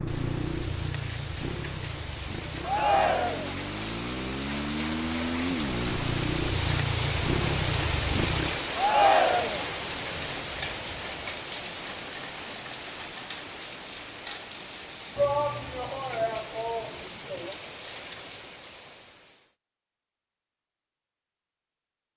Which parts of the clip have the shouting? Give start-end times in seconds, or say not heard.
2.6-3.5, 8.8-9.7, 15.2-17.6.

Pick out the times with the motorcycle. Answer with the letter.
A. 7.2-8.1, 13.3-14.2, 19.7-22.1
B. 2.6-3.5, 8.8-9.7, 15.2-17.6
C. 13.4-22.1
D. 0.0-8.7
D.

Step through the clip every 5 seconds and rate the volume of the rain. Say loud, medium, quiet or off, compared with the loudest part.
medium, loud, medium, medium, off.